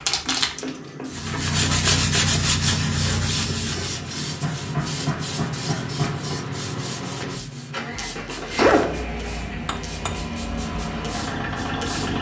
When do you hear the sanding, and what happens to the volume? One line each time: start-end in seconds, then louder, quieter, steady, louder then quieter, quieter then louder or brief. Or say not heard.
1.1-7.8 quieter.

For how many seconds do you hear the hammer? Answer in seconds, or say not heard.
5 s.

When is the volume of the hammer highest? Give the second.
9 s.